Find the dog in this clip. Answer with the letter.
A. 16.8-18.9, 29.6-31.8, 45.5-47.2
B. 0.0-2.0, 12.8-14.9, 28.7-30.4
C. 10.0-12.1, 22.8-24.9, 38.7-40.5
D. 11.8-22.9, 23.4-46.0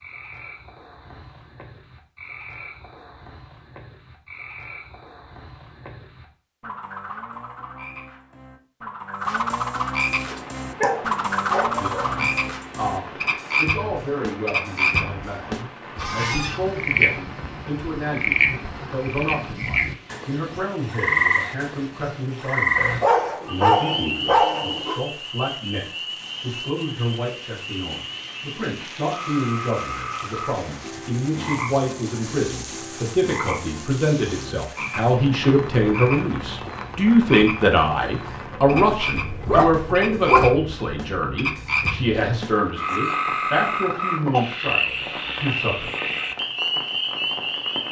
C.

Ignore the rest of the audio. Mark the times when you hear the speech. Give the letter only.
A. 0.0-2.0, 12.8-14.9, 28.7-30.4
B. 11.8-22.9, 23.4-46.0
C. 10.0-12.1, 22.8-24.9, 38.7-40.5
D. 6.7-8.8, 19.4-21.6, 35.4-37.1
B.